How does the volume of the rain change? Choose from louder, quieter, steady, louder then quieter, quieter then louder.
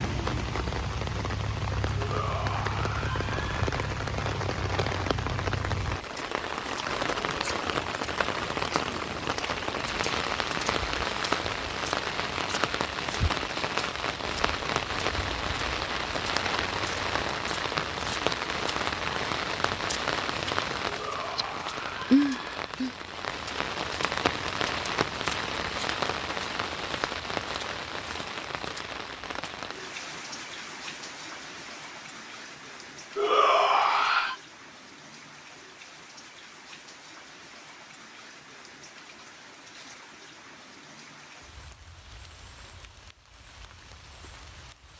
quieter.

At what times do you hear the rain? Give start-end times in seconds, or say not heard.
0.0-44.9.